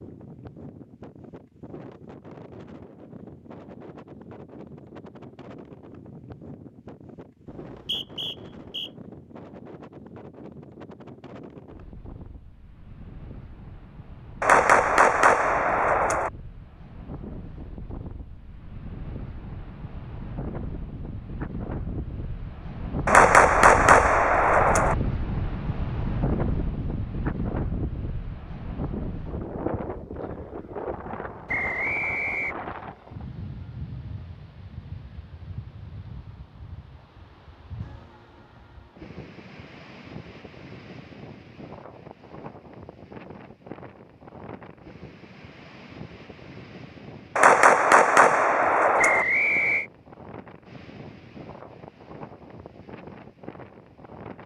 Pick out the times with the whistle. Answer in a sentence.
You can hear the whistle from 7.5 to 8.9 s, from 31.4 to 32.5 s and from 49.0 to 49.9 s.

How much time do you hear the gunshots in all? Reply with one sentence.
You can hear the gunshots for 6 seconds altogether.